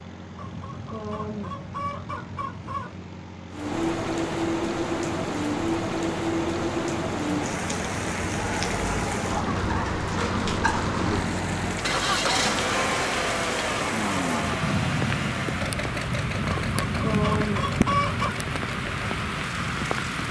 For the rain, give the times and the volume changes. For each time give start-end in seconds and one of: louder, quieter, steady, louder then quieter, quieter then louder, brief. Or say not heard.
3.5-20.2 steady.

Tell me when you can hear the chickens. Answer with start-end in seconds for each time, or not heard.
0.3-3.0, 16.5-18.4.